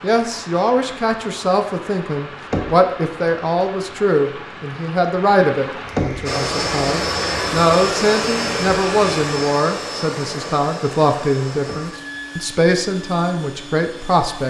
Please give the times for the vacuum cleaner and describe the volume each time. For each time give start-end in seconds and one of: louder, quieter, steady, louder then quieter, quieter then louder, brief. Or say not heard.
6.2-14.4 quieter.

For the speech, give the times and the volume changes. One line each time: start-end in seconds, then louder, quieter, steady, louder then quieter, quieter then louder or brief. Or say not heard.
0.0-14.4 steady.